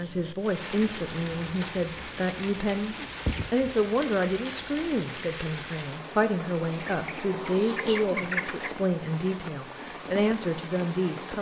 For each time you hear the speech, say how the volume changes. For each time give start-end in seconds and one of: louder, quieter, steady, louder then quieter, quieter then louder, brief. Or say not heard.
0.0-11.3 steady.